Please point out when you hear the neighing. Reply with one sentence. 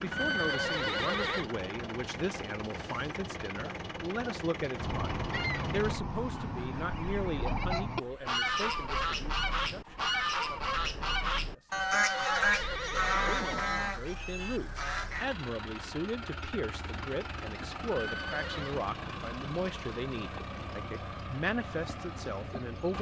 The neighing can be heard from 0.1 to 1.5 s, from 11.7 to 13.7 s and from 17.9 to 18.8 s.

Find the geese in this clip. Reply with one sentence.
You can hear the geese from 4.8 to 15.2 s.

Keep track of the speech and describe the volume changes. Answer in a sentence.
The volume of the speech goes down, then up.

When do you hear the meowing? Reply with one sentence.
The meowing can't be heard in this clip.